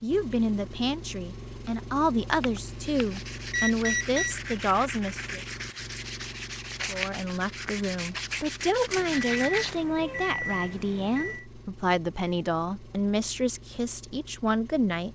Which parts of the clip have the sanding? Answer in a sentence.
The sanding can be heard from 2.6 to 9.8 s.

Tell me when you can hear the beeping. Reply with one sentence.
The beeping can be heard from 2.4 to 4.3 s and from 8.9 to 11.4 s.